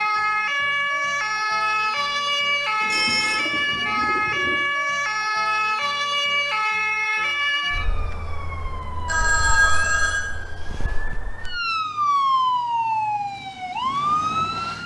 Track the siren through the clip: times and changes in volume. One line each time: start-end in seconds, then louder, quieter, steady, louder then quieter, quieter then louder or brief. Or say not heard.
0.0-14.8 quieter then louder.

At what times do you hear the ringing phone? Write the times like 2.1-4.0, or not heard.
2.0-3.4, 9.1-10.2.